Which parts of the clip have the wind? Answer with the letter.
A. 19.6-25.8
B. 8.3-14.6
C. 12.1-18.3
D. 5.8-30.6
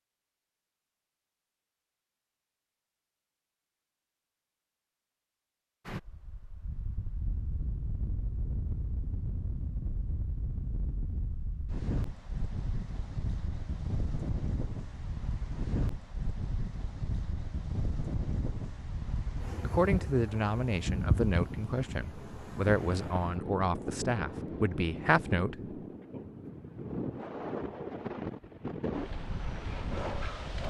D.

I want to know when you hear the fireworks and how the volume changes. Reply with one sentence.
You can't hear the fireworks here.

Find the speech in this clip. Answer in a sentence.
You can hear the speech from 19.6 to 25.8 s.